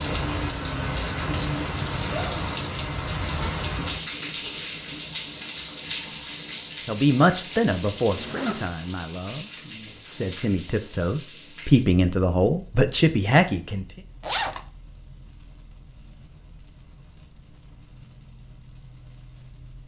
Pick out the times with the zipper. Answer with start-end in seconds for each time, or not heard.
1.2-2.8, 8.1-8.7, 14.2-14.7.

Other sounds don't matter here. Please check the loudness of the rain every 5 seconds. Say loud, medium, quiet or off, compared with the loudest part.
loud, medium, quiet, quiet.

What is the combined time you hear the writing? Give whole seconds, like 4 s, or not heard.
not heard.